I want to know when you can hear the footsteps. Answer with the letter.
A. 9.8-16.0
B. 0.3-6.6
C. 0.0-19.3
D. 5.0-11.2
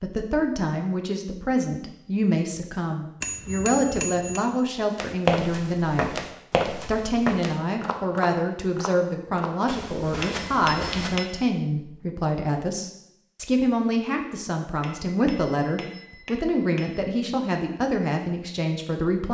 D.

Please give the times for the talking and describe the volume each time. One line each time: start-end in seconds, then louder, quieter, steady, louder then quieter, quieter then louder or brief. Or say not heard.
0.0-19.3 steady.